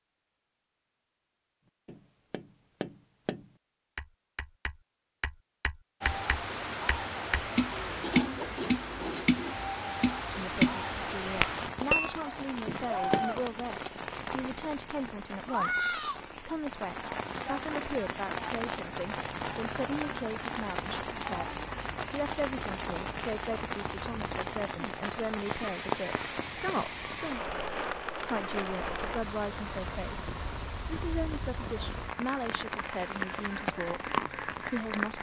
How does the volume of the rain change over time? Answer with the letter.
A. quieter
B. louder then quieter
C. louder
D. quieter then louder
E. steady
E.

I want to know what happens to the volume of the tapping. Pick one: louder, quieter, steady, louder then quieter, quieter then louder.
louder.